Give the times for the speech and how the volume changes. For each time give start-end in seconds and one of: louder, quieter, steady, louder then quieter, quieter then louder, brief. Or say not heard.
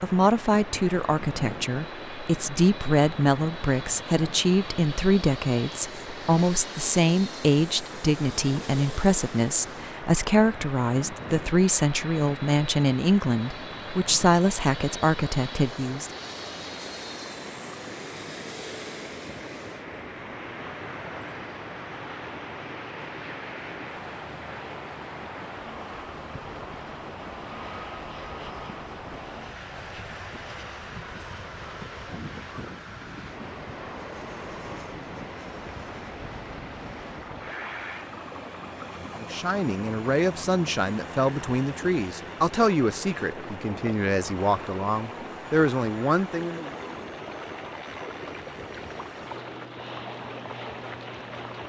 0.0-16.1 steady
39.1-46.8 steady.